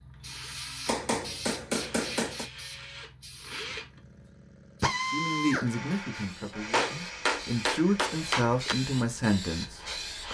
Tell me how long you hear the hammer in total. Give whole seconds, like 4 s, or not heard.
4 s.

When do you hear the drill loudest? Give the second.
5 s.